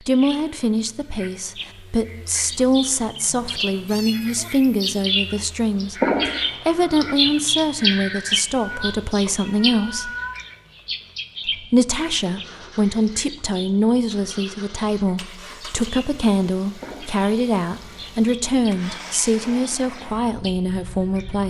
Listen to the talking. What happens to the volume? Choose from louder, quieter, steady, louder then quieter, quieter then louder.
steady.